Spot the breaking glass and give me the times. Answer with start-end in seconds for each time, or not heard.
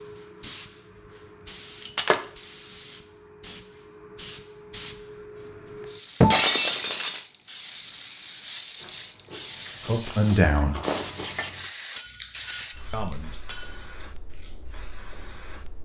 1.8-2.3, 6.2-7.2, 11.9-13.9.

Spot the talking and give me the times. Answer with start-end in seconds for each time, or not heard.
9.8-10.8, 12.9-13.4.